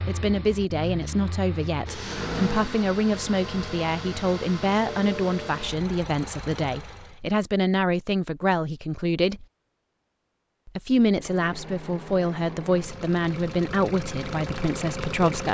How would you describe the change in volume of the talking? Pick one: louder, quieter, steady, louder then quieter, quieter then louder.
steady.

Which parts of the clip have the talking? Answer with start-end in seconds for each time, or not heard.
0.1-9.4, 10.7-15.4.